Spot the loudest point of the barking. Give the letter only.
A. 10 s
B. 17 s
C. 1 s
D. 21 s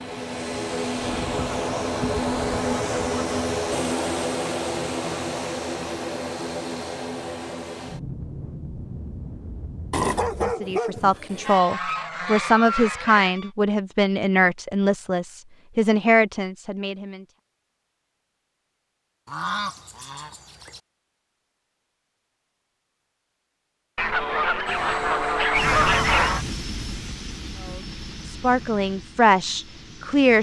A.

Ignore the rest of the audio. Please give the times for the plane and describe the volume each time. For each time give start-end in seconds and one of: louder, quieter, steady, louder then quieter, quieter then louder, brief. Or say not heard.
0.0-10.6 quieter
24.6-30.3 quieter.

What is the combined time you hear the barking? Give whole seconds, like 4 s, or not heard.
2 s.